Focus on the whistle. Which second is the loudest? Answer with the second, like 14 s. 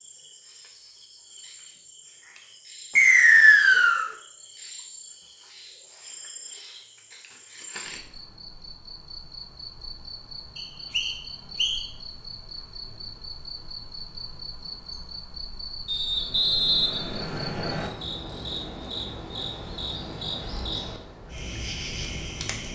3 s.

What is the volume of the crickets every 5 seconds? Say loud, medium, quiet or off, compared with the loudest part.
medium, medium, medium, loud, loud.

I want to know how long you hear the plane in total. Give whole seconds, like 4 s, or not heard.
not heard.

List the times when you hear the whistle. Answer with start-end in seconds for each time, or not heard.
3.0-4.0, 10.6-11.8, 15.8-17.9.